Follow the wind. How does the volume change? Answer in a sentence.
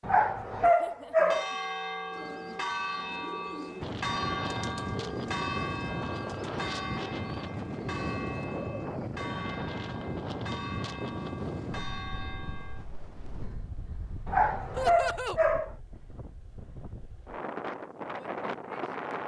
The loudness of the wind goes down, then up.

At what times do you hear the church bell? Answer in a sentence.
You can hear the church bell from 1.1 to 12.8 s.